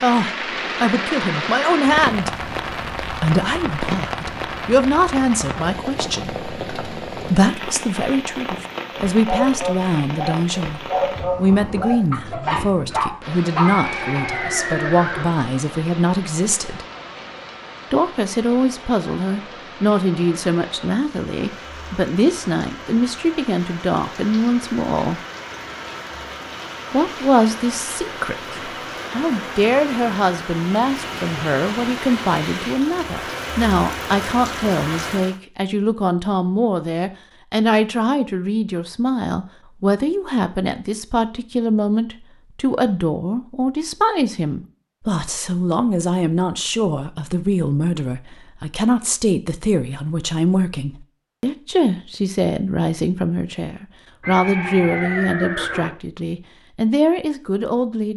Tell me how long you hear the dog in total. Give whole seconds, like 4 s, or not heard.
5 s.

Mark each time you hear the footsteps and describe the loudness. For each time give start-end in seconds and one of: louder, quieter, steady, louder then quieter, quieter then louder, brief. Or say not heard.
not heard.